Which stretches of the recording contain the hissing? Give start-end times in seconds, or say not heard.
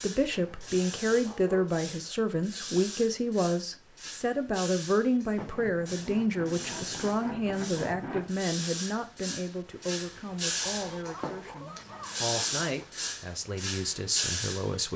0.0-14.9.